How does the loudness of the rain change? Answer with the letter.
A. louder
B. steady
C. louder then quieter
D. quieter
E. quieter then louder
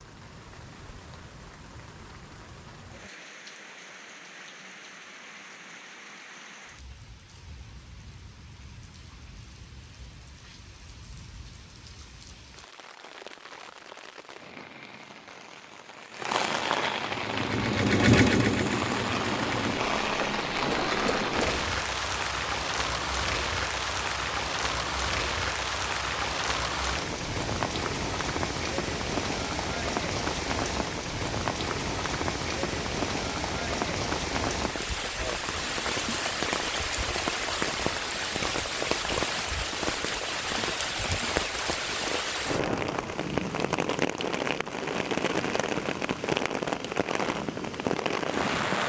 A.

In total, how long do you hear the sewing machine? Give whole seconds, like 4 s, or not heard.
5 s.